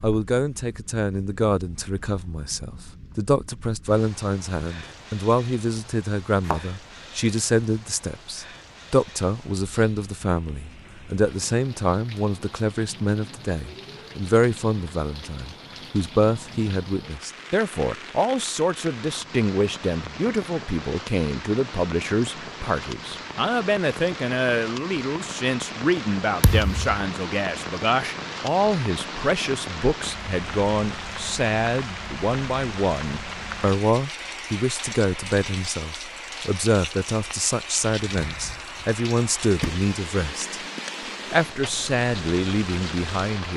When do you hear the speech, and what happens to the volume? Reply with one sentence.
The speech can be heard from 0.0 to 40.6 s, at a steady volume; and briefly from 41.3 to 43.5 s.